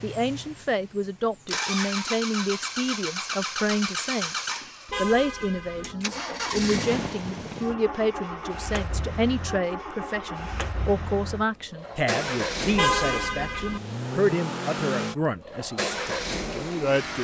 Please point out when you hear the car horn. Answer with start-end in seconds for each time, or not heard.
4.8-6.0, 12.8-13.8.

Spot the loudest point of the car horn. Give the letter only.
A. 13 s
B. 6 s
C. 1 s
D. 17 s
A.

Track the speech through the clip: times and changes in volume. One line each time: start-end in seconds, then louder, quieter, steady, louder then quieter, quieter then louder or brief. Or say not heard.
0.0-17.1 steady.